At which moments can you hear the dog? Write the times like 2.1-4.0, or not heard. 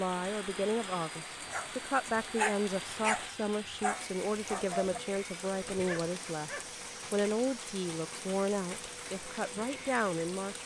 1.4-5.0, 5.7-6.7.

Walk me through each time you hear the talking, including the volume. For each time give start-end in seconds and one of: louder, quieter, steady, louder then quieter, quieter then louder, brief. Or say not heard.
0.0-10.6 steady.